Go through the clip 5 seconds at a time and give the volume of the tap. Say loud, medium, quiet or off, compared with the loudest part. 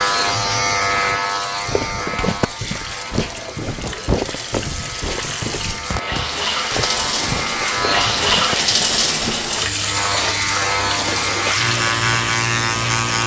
medium, loud, loud.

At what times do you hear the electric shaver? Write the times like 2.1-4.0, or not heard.
0.0-8.3, 9.8-13.2.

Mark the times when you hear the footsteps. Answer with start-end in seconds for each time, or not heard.
1.6-9.4.